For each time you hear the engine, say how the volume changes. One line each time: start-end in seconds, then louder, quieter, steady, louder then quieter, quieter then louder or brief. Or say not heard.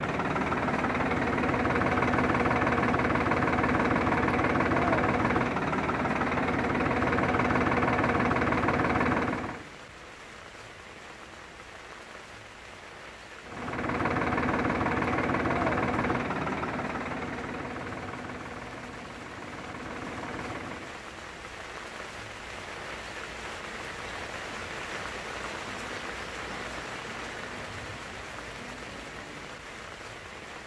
0.0-9.7 steady
13.4-21.0 quieter.